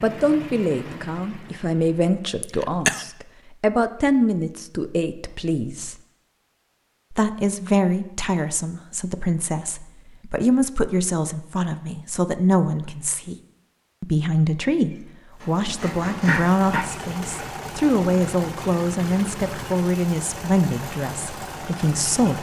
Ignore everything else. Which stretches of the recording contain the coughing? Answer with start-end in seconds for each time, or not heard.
2.4-3.0, 15.8-17.5.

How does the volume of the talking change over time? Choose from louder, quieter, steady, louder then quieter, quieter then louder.
steady.